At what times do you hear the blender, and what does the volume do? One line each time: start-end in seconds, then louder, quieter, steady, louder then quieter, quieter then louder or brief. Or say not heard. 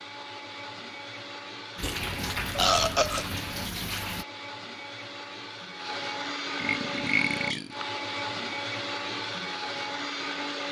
0.0-10.6 louder.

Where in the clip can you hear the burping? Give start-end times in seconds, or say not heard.
1.8-3.5, 6.5-7.8.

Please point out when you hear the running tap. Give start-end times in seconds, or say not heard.
1.8-4.2.